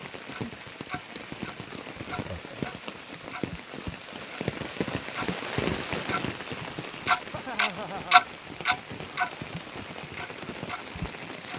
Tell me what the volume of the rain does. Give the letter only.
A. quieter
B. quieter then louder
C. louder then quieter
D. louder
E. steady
C.